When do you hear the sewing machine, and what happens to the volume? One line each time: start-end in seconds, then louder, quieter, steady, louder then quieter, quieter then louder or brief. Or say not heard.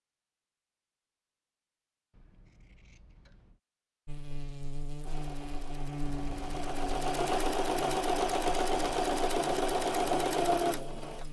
5.0-11.2 louder.